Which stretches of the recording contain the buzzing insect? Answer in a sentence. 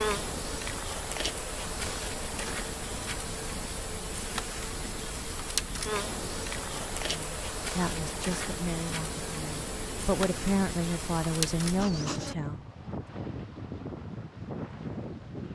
You can hear the buzzing insect from 0.0 to 12.3 s.